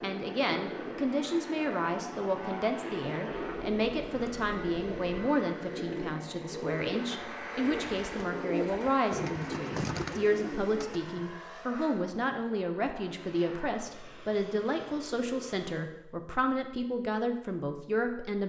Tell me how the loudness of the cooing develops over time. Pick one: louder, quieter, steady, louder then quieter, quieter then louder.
louder.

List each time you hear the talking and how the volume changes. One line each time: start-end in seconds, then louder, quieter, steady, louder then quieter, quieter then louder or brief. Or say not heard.
0.0-18.4 steady.